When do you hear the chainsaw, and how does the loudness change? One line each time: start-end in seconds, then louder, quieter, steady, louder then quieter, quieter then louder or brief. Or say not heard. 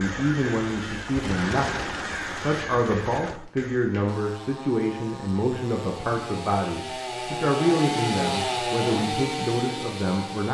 0.0-10.5 louder.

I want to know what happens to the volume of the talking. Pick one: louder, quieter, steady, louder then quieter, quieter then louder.
steady.